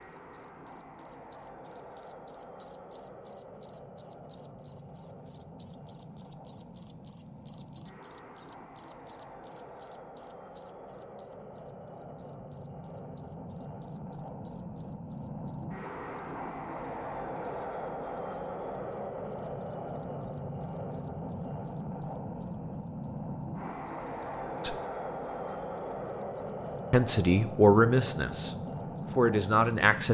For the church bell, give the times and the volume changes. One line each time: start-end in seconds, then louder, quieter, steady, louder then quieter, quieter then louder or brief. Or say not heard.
not heard.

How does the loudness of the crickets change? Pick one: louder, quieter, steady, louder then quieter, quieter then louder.
quieter.